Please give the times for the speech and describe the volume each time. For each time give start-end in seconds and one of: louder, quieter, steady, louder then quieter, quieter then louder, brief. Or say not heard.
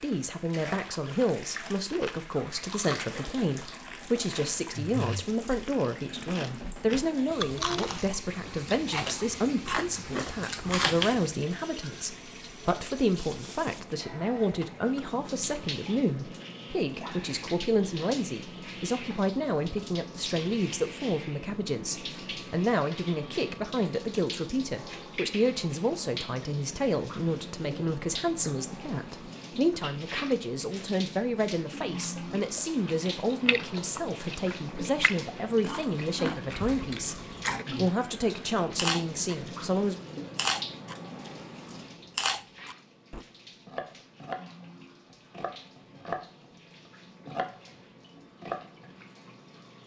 0.0-40.0 steady.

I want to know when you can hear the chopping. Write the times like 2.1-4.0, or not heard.
43.6-44.4, 45.3-46.2, 47.2-47.7, 48.4-48.9.